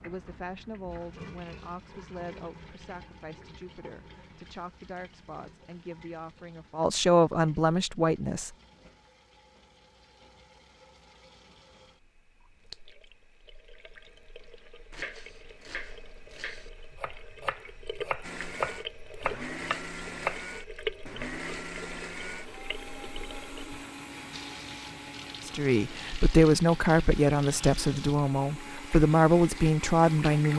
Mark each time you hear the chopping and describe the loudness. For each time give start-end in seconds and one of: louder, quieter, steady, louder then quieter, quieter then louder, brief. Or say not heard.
14.9-20.4 louder.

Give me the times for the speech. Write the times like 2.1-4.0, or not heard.
0.0-8.5, 25.4-30.5.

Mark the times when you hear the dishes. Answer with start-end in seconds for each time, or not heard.
not heard.